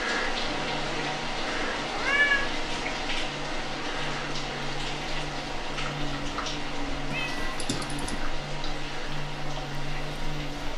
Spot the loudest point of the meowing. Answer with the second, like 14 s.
2 s.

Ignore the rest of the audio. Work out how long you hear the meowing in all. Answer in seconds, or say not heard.
2 s.